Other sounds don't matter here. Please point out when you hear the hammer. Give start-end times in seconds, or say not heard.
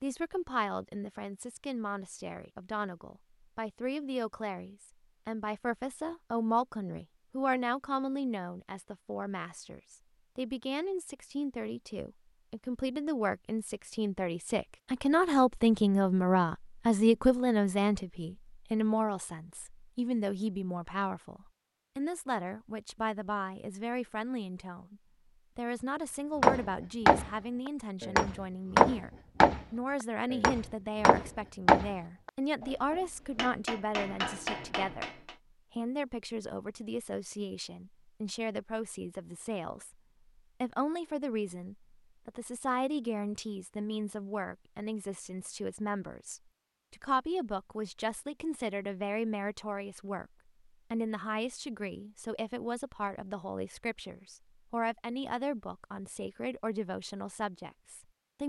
26.4-35.4.